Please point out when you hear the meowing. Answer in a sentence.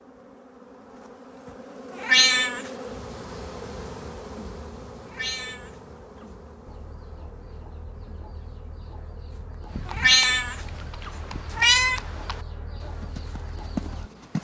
The meowing can be heard from 1.9 to 2.7 s, from 5.0 to 6.2 s and from 9.9 to 12.0 s.